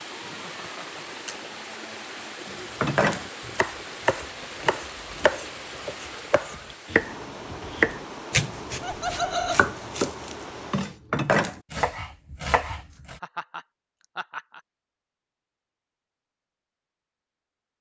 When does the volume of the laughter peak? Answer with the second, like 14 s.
9 s.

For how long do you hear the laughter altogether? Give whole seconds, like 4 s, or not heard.
3 s.